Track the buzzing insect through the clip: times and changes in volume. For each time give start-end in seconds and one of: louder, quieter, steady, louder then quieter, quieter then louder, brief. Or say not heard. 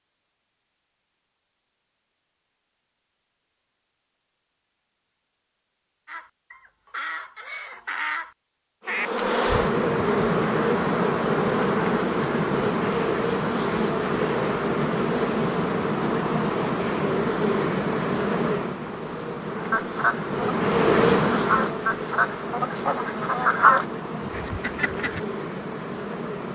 8.8-26.4 quieter.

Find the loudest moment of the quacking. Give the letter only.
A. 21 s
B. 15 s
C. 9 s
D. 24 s
D.